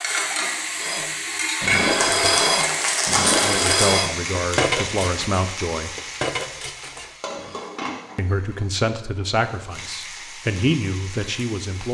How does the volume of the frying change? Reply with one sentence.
The loudness of the frying goes down.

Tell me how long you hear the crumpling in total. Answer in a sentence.
You can hear the crumpling for 2 seconds altogether.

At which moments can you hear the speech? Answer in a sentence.
You can hear the speech from 3.4 to 6.0 s and from 8.2 to 11.8 s.